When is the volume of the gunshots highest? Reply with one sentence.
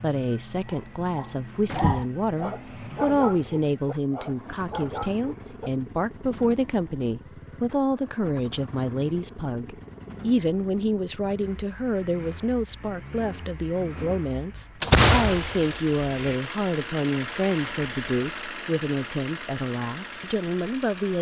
The loudest moment of the gunshots is at 15 seconds.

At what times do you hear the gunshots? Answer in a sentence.
You can hear the gunshots from 14.8 to 16.4 s.